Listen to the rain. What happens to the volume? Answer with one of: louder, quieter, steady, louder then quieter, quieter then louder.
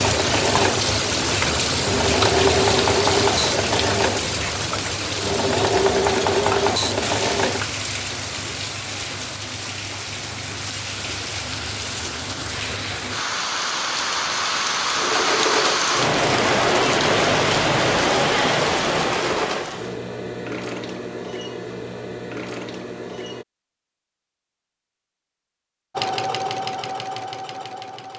quieter then louder.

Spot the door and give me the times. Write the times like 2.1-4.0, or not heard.
not heard.